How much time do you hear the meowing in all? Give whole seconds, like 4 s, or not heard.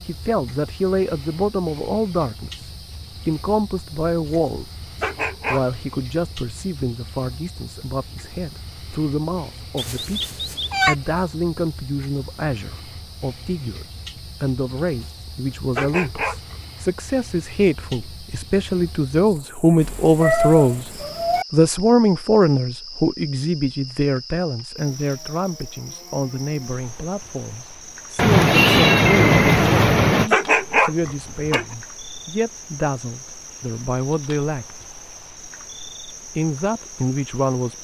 5 s.